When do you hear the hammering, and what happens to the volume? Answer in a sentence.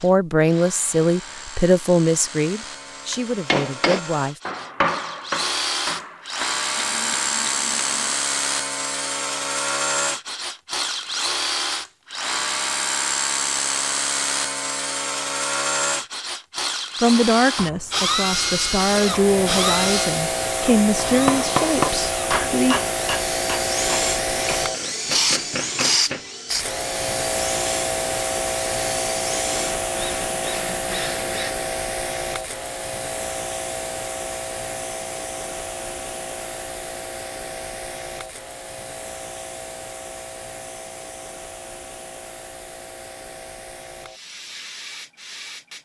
You can hear the hammering from 3.1 to 8.2 s, getting quieter; and from 20.9 to 26.2 s, getting quieter then louder.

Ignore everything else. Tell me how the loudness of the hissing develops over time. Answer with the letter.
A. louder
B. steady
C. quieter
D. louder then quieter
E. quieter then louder
C.